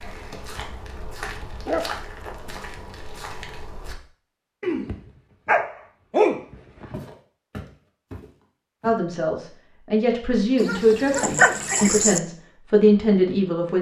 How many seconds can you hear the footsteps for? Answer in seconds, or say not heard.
6 s.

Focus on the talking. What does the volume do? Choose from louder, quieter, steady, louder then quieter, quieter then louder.
louder.